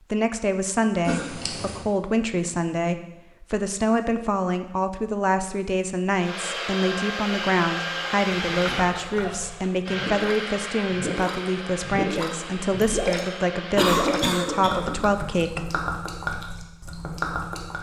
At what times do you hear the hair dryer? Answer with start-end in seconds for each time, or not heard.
6.2-13.9.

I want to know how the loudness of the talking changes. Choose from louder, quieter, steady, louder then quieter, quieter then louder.
steady.